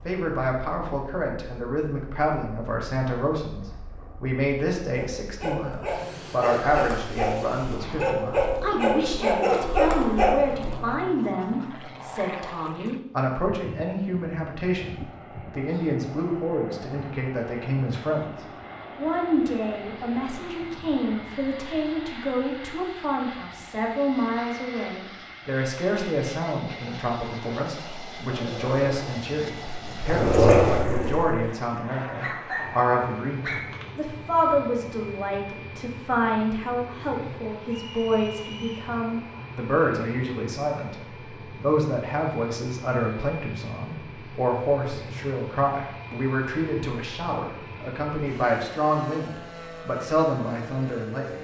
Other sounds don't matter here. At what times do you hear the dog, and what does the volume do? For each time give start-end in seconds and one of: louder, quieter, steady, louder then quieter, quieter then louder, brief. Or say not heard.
5.0-10.8 louder
28.2-34.0 louder then quieter.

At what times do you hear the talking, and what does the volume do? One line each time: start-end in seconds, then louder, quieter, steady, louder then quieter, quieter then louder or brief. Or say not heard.
0.1-18.2 steady
18.9-51.3 steady.